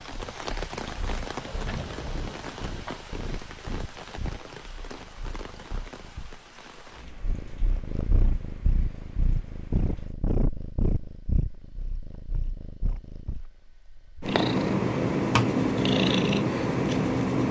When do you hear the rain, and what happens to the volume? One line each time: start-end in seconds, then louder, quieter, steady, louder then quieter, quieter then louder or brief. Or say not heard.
0.0-10.2 quieter.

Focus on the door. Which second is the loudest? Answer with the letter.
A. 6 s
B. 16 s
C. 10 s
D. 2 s
D.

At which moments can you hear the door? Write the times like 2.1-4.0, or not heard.
1.4-3.0.